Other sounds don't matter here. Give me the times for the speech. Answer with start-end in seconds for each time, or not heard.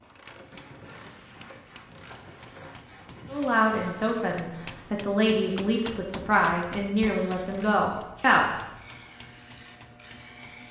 3.3-8.4.